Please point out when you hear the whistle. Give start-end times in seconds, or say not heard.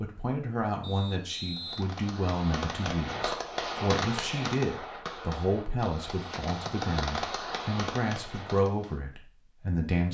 0.8-1.9.